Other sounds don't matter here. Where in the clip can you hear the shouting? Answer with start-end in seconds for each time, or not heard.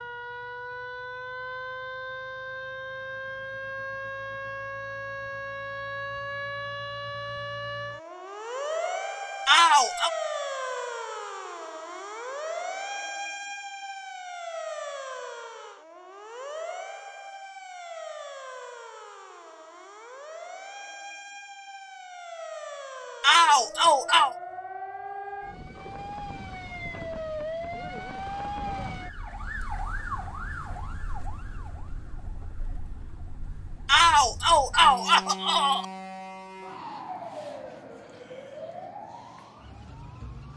9.4-10.1, 23.2-24.4, 33.9-35.9.